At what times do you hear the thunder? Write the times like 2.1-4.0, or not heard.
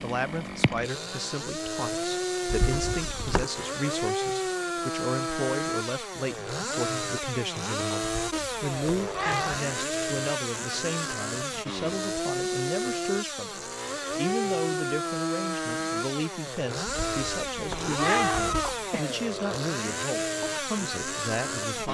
not heard.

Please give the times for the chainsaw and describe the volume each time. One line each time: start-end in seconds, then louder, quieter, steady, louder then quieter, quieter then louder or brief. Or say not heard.
0.0-21.9 steady.